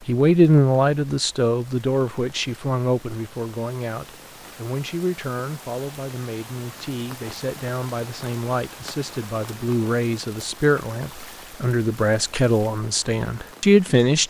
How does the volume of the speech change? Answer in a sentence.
The loudness of the speech goes down, then up.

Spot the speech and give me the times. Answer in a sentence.
You can hear the speech from 0.1 to 14.2 s.